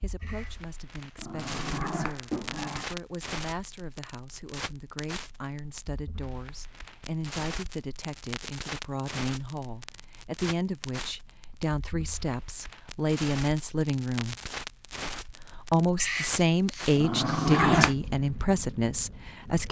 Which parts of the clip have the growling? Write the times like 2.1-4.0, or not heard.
0.2-2.9, 16.0-17.9.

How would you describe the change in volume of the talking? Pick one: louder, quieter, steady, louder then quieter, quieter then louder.
louder.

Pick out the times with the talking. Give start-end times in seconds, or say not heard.
0.0-14.3, 15.3-19.6.